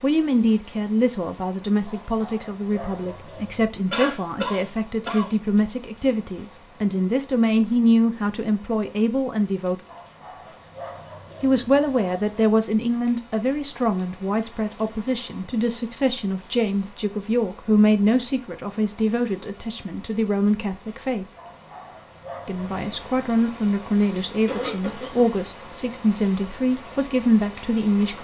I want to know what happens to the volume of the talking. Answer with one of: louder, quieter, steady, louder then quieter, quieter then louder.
steady.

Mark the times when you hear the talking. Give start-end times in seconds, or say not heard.
0.0-9.8, 11.4-21.2, 22.4-28.2.